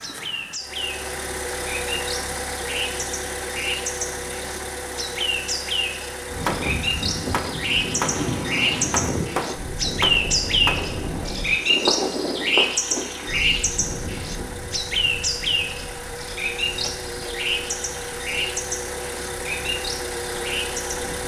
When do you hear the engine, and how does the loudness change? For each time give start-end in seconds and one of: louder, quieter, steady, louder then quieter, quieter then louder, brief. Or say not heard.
0.0-21.2 quieter then louder.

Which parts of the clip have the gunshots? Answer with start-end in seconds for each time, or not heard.
6.5-10.9.